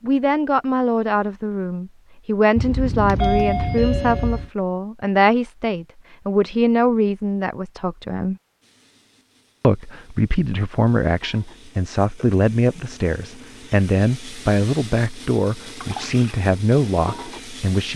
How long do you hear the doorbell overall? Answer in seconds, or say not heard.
2 s.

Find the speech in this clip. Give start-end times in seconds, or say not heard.
0.0-8.3, 9.6-17.9.